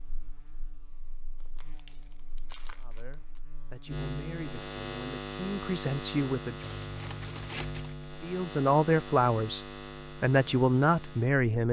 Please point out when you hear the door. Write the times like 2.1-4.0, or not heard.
not heard.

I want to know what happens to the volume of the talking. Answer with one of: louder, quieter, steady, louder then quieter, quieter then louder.
louder.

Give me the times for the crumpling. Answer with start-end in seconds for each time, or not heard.
1.4-3.4, 6.6-8.0.